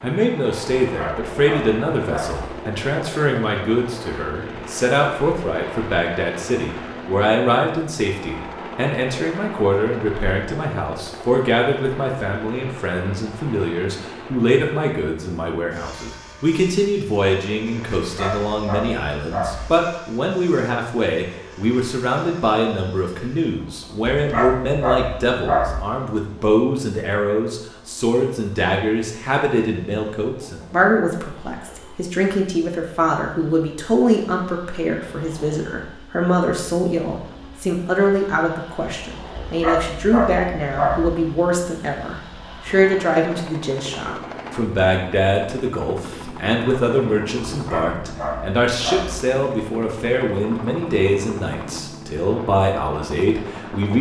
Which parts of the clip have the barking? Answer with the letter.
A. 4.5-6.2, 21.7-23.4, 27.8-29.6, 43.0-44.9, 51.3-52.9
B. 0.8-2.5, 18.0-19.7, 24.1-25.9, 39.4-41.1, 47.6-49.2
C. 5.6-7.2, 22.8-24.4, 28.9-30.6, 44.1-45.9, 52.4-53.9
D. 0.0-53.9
B.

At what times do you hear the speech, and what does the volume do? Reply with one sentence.
You can hear the speech from 0.0 to 53.9 s, at a steady volume.